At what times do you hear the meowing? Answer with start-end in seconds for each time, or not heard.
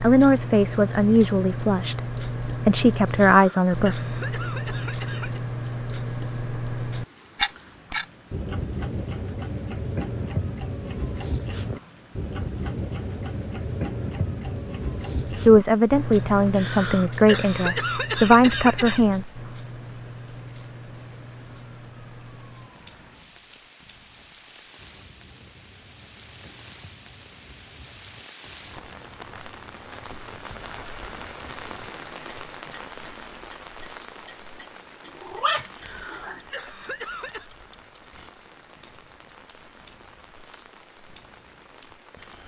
35.1-36.4.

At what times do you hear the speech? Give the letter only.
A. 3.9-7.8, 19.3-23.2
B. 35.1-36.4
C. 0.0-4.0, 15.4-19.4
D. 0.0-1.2
C.